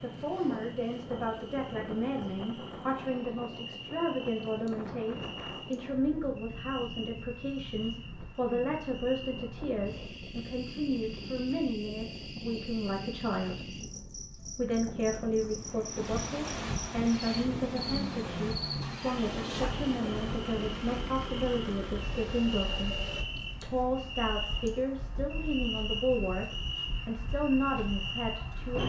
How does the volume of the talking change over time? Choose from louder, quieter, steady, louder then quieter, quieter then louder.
steady.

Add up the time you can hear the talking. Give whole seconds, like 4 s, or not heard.
27 s.